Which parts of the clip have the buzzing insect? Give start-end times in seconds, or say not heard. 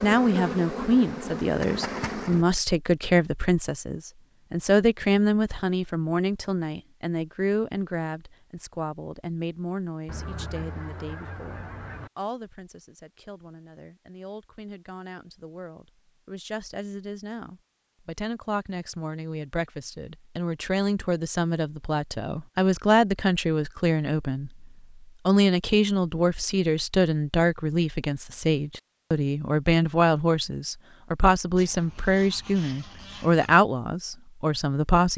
0.0-2.5.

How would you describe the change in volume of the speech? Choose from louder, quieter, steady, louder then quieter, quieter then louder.
quieter then louder.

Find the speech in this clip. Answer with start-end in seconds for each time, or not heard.
0.0-24.6, 25.2-35.1.